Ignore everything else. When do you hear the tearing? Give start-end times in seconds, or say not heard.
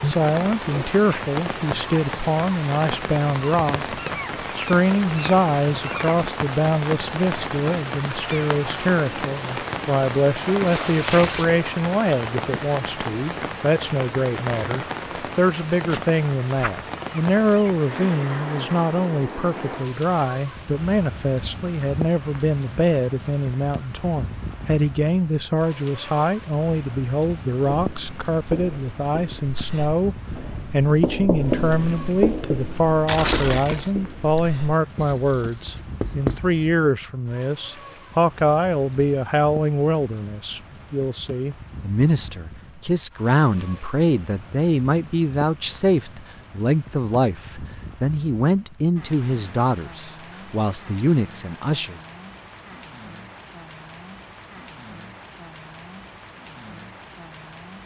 10.6-11.4, 33.0-34.0.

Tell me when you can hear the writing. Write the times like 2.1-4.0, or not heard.
27.7-36.5.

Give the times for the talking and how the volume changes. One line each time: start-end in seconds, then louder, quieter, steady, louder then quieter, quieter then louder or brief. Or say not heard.
0.0-52.0 steady.